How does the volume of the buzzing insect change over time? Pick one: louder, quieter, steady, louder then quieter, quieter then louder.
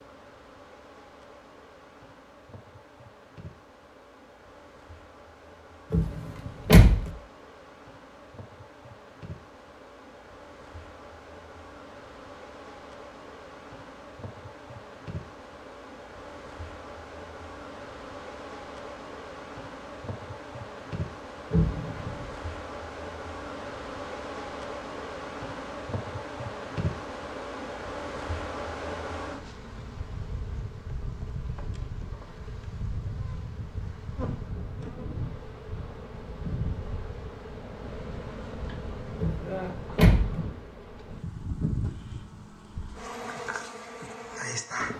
louder.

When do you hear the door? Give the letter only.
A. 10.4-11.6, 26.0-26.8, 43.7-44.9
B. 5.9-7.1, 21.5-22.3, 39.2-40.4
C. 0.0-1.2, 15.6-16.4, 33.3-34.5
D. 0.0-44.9
B.